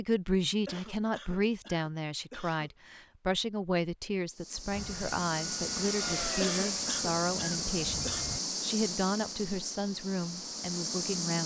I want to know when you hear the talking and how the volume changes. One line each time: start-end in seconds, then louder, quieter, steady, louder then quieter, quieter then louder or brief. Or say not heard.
0.0-11.4 steady.